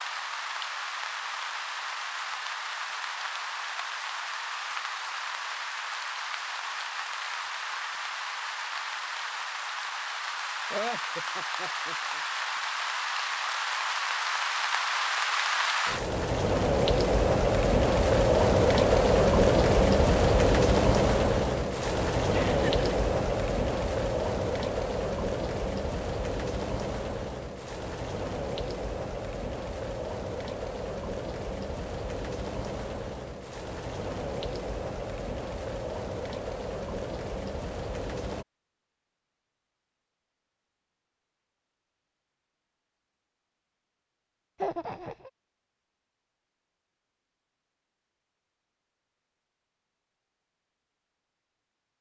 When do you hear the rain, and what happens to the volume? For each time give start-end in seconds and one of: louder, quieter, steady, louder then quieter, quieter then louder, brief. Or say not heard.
0.0-38.5 louder then quieter.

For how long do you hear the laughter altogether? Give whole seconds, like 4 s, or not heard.
3 s.